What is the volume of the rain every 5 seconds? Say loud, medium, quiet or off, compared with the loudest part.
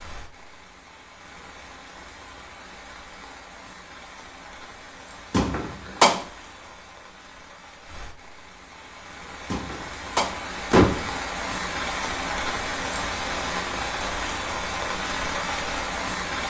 quiet, quiet, loud, loud.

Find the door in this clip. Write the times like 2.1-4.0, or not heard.
5.3-6.2, 9.5-11.2.